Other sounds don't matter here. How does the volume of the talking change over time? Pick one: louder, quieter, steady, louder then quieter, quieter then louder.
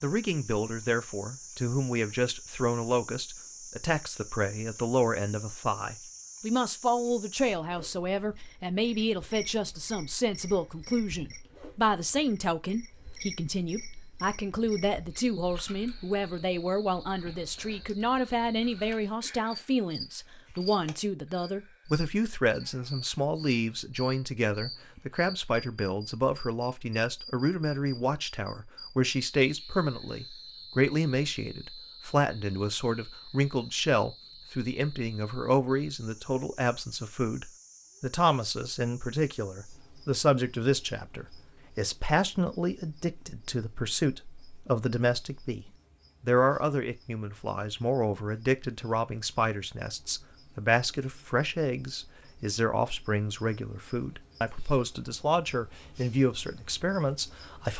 steady.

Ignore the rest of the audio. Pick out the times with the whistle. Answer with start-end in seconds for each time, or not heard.
not heard.